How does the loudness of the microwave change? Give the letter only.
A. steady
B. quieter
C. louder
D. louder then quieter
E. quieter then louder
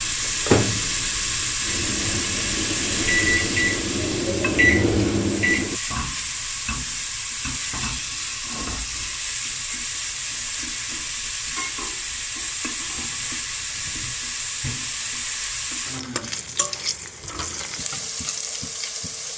E.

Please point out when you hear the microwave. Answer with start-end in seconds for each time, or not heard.
0.0-5.8.